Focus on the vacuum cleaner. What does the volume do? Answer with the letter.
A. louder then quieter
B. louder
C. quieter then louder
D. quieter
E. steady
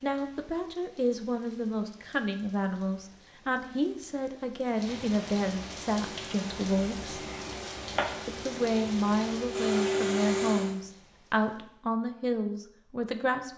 B.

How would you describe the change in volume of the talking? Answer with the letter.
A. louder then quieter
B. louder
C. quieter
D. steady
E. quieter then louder
D.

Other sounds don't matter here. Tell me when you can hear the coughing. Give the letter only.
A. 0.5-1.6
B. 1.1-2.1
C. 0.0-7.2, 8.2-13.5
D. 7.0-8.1
D.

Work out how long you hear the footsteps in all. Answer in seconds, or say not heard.
not heard.